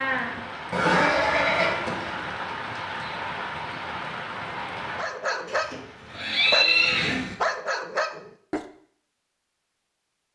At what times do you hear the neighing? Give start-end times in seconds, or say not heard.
0.7-2.2, 5.5-7.3.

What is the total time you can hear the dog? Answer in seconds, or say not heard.
4 s.